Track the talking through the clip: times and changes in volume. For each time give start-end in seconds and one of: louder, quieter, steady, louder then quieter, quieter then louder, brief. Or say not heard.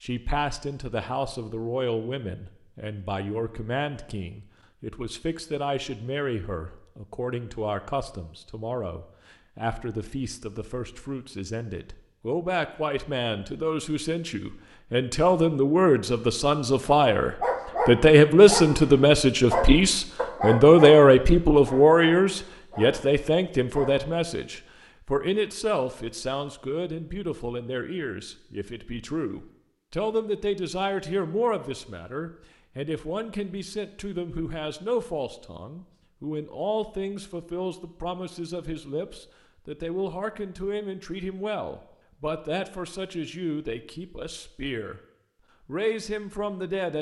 0.0-45.0 louder then quieter
45.6-46.9 brief.